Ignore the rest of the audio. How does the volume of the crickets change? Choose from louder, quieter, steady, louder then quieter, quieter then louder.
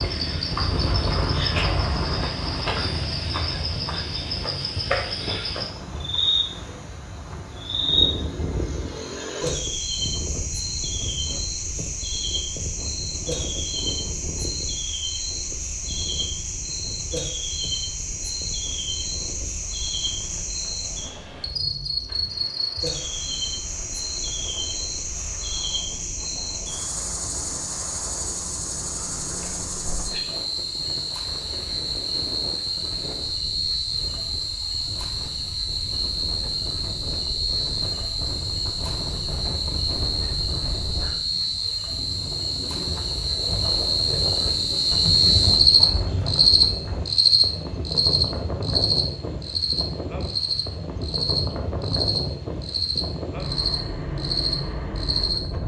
louder.